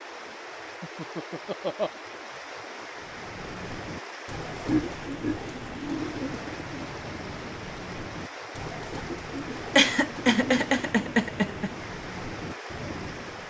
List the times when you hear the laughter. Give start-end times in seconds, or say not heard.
0.8-1.9, 4.7-6.2, 9.8-11.7.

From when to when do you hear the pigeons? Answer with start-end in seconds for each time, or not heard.
3.0-13.4.